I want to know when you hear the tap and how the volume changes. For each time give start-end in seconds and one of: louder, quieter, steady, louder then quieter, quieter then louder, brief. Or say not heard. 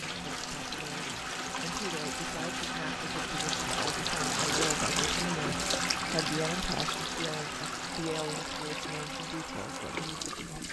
0.0-10.6 louder then quieter.